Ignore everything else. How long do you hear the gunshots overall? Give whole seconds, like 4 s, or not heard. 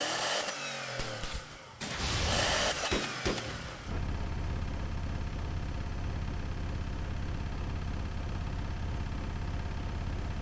3 s.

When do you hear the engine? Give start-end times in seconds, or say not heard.
0.0-10.3.